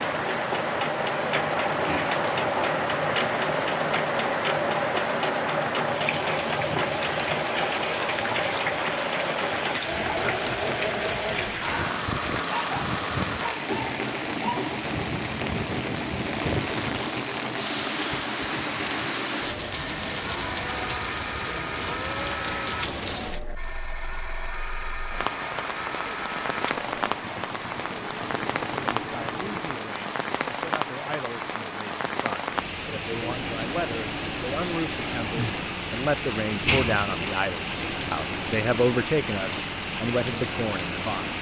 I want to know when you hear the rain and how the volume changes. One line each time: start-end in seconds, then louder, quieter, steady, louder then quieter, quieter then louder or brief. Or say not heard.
0.0-41.3 steady.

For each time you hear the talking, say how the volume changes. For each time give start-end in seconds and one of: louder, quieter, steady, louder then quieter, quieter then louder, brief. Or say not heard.
28.9-41.3 louder.